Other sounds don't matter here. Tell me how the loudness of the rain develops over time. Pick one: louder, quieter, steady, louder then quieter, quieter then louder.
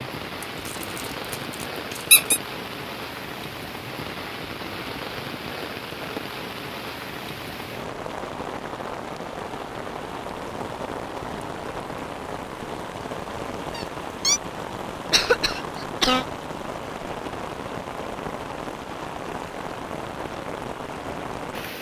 steady.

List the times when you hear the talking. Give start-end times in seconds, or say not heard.
not heard.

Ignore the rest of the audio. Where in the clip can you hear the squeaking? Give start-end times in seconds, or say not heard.
0.7-2.4, 13.7-14.4.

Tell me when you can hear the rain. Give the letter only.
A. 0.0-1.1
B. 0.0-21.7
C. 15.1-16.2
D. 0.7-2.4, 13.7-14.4
B.